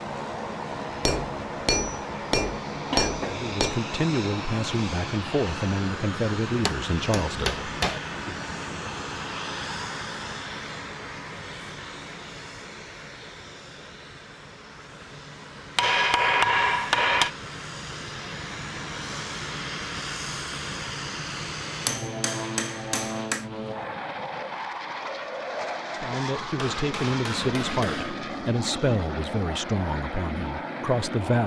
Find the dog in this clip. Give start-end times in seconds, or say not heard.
not heard.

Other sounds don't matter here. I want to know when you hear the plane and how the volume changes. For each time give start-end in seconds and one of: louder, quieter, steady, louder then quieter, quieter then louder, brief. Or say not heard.
0.0-31.4 quieter then louder.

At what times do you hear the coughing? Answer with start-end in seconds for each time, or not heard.
2.9-3.5.